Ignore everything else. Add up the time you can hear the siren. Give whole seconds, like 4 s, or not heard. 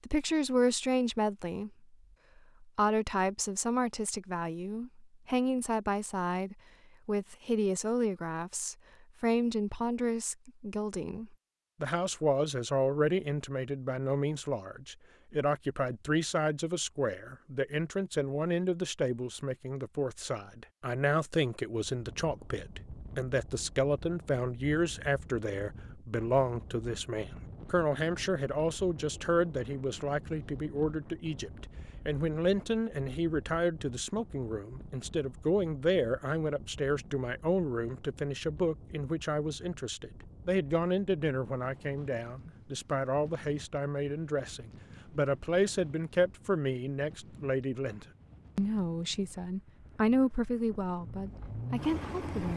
not heard.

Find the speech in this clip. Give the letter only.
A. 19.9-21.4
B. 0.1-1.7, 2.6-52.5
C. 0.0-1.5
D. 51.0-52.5
B.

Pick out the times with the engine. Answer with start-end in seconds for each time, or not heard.
51.0-52.5.